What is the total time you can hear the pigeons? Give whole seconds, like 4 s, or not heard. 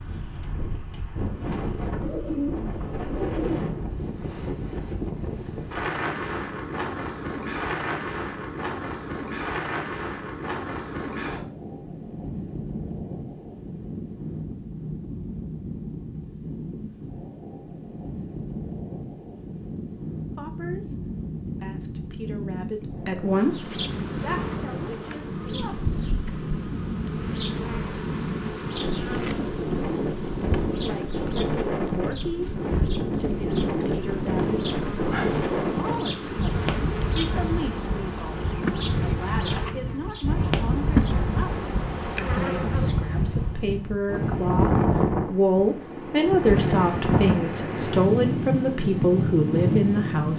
2 s.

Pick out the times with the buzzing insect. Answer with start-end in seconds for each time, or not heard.
22.9-43.0.